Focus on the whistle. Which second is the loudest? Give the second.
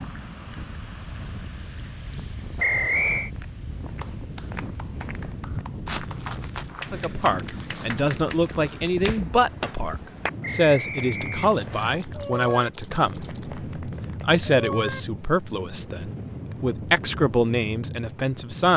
3 s.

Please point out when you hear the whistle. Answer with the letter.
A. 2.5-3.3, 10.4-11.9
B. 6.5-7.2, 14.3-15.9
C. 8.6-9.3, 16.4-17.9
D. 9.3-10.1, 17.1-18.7
A.